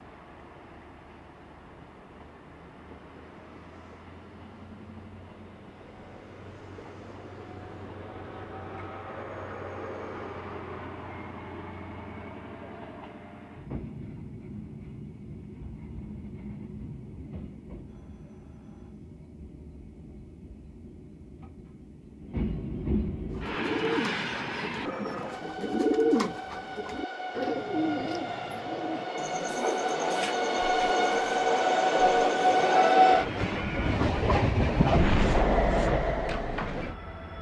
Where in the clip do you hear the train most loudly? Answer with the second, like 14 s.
33 s.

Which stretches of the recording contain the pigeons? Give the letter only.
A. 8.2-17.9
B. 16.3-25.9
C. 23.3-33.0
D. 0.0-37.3
C.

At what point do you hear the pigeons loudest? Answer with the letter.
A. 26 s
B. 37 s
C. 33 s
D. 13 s
A.